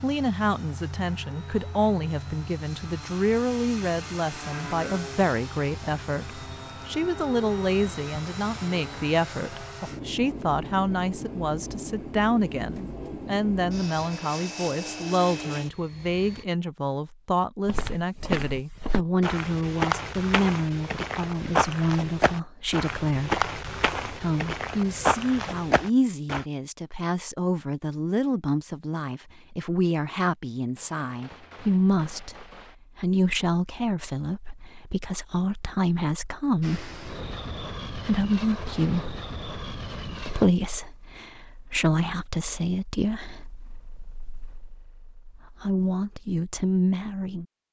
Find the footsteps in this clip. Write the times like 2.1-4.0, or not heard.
17.6-26.4.